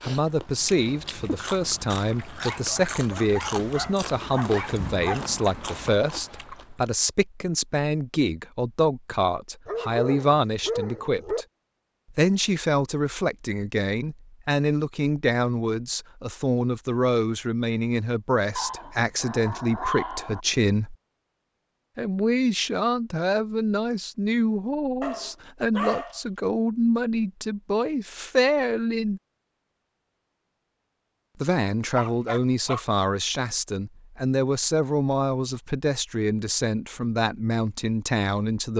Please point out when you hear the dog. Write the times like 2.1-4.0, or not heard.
2.4-5.2, 9.7-11.4, 18.6-20.4, 25.0-26.2, 31.9-32.8.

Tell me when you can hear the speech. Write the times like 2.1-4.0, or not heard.
0.0-11.4, 12.1-20.9, 21.9-29.2, 31.4-38.7.